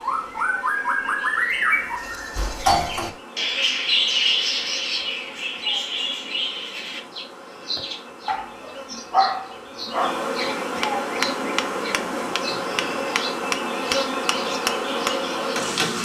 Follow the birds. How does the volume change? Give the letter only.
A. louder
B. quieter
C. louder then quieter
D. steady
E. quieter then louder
B.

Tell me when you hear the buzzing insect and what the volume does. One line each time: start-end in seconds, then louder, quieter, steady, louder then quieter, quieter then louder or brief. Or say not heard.
0.0-15.9 louder.